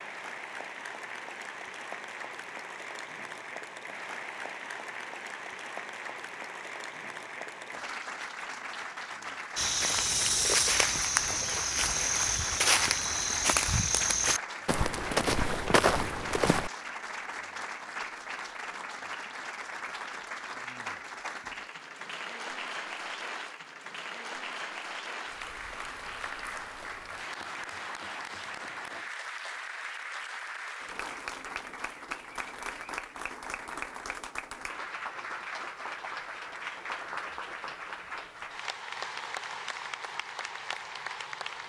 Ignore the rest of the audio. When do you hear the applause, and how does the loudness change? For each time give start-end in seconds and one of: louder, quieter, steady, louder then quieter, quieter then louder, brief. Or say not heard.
0.0-41.6 steady.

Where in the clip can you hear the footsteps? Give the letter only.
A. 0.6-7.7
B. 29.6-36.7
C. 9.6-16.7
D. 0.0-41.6
C.